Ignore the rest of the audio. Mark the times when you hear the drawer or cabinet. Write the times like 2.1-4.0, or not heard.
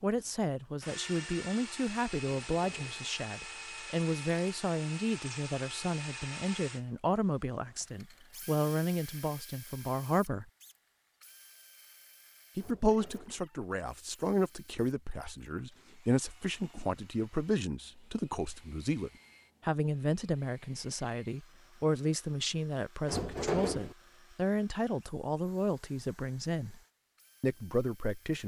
2.4-3.0, 12.6-13.4, 23.1-23.9.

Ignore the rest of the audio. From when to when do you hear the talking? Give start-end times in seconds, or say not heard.
0.0-10.4, 12.6-26.8, 27.4-28.4.